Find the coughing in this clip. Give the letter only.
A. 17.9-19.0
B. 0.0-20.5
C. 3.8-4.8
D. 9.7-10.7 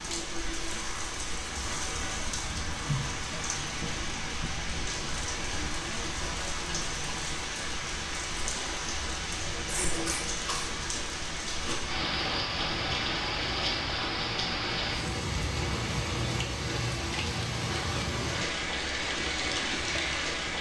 D.